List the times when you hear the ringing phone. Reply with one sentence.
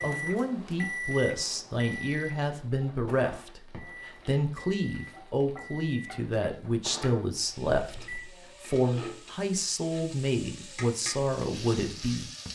You can't hear the ringing phone here.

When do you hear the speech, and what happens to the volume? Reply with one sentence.
The speech can be heard from 0.0 to 12.5 s, at a steady volume.